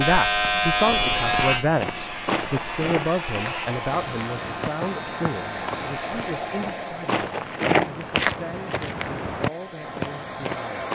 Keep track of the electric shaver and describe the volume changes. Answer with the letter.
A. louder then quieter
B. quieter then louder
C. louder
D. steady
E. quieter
E.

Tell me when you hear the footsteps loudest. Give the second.
8 s.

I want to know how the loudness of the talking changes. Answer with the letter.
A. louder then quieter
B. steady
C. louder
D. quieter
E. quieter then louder
D.